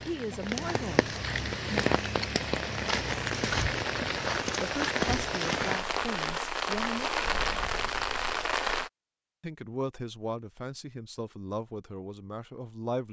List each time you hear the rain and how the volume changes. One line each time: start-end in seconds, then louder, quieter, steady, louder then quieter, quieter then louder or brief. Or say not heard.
0.0-8.9 steady.